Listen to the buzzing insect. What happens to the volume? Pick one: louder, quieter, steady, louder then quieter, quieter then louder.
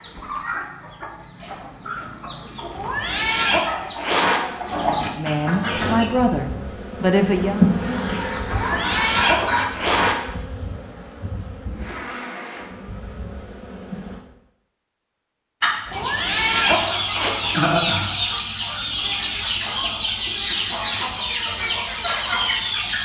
louder then quieter.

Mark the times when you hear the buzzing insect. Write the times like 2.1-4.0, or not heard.
5.7-14.2.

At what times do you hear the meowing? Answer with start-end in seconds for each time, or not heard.
2.7-4.4, 8.4-10.2, 15.8-17.3.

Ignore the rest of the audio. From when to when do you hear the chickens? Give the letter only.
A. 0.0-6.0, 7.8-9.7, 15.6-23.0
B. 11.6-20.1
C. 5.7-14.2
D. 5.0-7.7
A.